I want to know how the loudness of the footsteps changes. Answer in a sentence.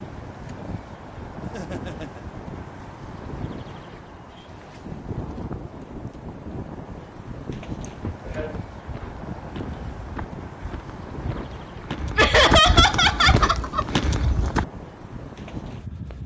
The loudness of the footsteps goes up.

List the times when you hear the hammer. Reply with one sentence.
You can't hear the hammer here.